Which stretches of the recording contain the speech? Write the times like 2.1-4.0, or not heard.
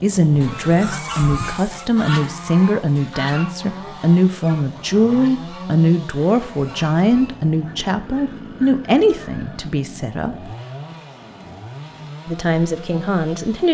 0.0-10.5, 12.2-13.6.